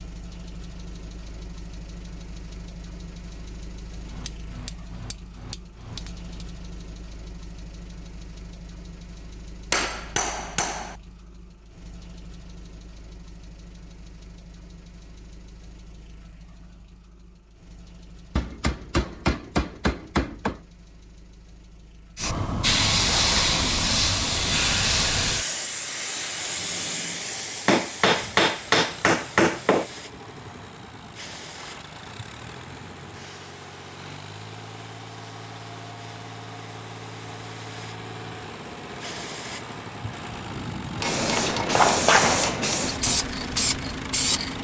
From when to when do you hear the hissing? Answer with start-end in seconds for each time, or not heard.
22.1-44.5.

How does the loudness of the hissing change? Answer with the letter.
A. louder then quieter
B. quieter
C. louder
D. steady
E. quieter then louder
E.